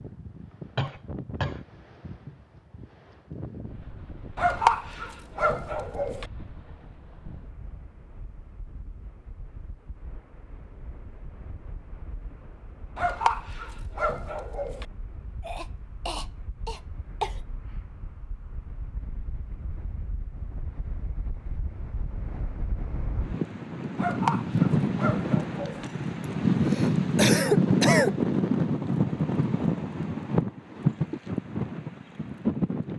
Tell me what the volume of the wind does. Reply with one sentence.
The loudness of the wind goes down, then up.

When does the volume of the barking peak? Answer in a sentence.
The volume of the barking peaks at 5 seconds.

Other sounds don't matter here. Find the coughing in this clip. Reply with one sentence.
You can hear the coughing from 0.8 to 1.6 s, from 15.4 to 17.4 s and from 26.2 to 28.1 s.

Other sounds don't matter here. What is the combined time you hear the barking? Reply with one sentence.
You can hear the barking for 6 seconds altogether.